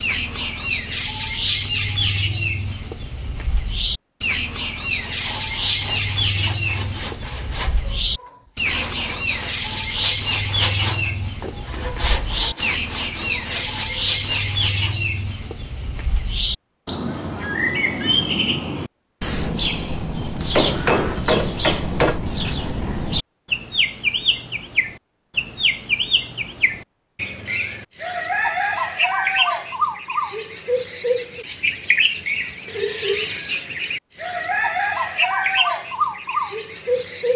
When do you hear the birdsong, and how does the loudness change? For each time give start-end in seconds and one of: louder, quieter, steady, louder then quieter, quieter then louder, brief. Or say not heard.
0.0-37.3 steady.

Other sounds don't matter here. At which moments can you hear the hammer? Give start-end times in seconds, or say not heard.
20.4-22.2.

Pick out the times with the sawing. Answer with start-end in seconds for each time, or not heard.
4.9-15.2.